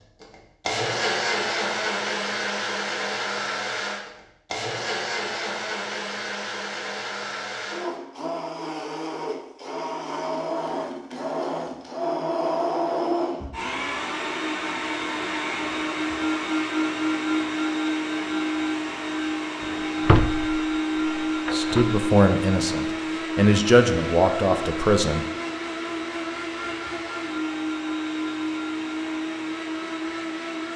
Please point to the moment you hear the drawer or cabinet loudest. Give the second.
20 s.